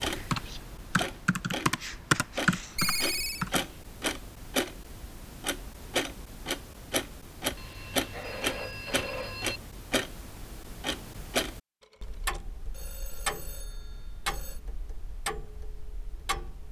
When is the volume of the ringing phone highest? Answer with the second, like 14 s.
3 s.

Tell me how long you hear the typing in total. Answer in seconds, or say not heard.
4 s.